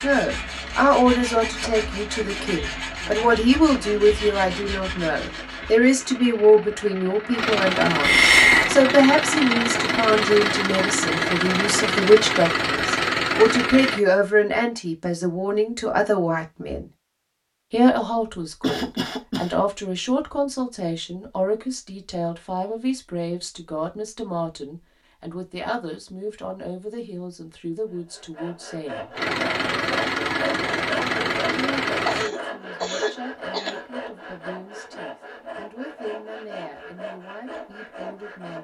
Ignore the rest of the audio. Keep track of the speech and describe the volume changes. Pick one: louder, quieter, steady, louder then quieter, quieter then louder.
quieter.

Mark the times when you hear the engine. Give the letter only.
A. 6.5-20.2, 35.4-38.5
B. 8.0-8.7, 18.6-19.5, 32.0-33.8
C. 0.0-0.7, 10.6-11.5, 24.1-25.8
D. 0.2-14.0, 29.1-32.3
D.